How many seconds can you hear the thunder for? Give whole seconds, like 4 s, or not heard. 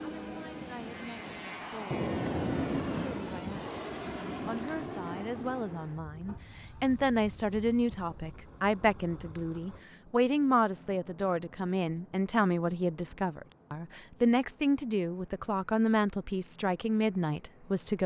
4 s.